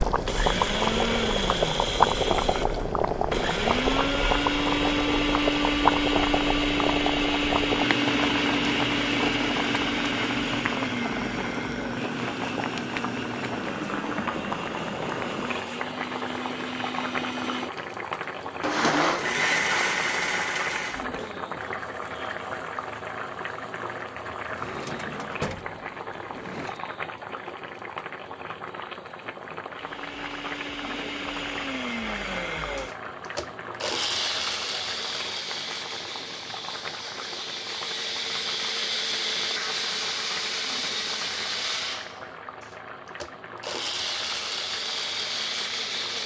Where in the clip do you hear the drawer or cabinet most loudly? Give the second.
25 s.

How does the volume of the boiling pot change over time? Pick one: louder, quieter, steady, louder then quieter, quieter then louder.
quieter.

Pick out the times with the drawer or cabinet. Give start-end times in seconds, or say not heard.
24.4-26.8.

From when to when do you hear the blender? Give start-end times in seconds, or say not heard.
0.1-21.3, 29.7-46.2.